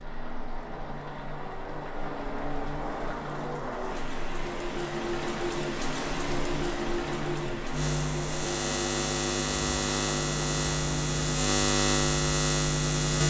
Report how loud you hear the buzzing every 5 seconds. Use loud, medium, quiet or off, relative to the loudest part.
quiet, medium, loud.